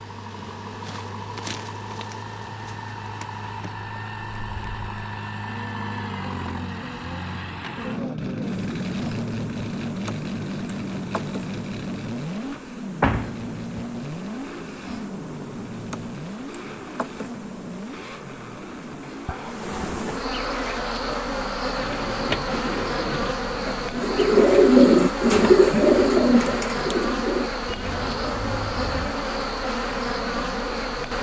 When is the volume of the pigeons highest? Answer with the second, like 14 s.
25 s.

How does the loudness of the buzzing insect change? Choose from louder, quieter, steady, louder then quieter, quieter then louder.
louder.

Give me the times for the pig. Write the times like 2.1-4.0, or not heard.
not heard.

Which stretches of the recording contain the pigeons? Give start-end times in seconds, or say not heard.
21.8-29.1.